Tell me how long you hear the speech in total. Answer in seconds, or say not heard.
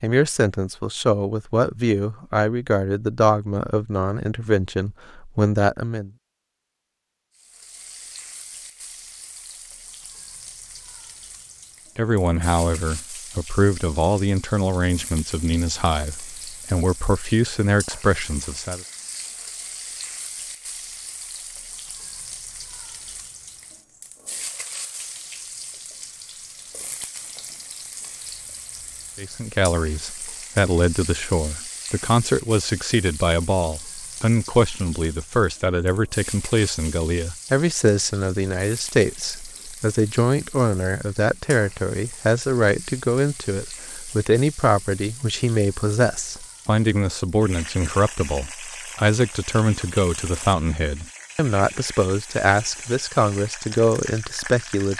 39 s.